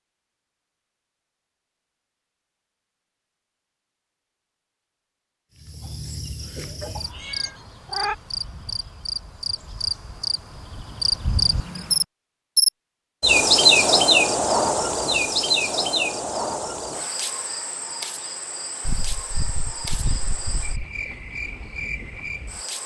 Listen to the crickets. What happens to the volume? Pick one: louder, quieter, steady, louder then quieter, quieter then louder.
louder then quieter.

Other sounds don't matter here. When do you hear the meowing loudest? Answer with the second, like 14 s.
8 s.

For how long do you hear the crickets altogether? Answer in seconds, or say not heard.
17 s.